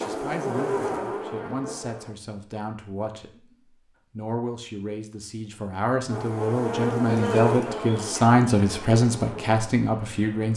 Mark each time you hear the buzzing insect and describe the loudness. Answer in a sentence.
The buzzing insect can be heard briefly from 0.0 to 2.1 s; and from 6.0 to 10.5 s, getting quieter.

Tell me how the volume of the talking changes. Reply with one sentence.
The volume of the talking goes up.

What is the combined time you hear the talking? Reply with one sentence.
You can hear the talking for 10 seconds altogether.